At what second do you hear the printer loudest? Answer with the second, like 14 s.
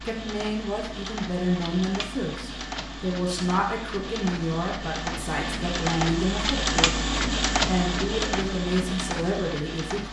7 s.